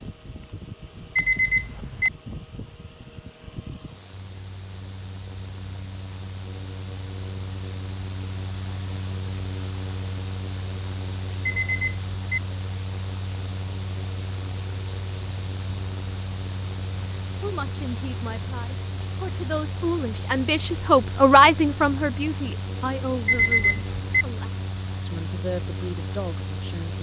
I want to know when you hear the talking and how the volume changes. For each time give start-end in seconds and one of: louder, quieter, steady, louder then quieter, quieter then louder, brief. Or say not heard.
17.3-26.9 louder then quieter.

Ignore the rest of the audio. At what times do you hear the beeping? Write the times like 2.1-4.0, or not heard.
1.1-2.1, 11.4-12.4, 23.2-24.2.